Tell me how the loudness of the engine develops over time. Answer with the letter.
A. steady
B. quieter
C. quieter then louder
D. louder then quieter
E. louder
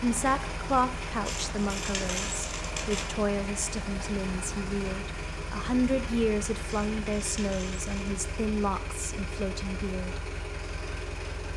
A.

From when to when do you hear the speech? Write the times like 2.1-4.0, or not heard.
0.0-10.2.